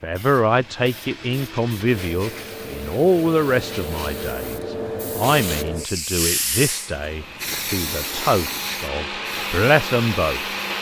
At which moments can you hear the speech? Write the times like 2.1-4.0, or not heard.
0.0-10.4.